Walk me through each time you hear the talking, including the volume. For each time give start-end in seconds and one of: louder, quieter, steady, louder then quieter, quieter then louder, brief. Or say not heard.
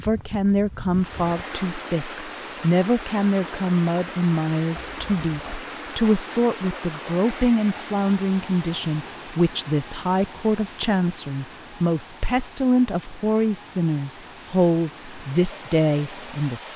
0.0-16.7 steady.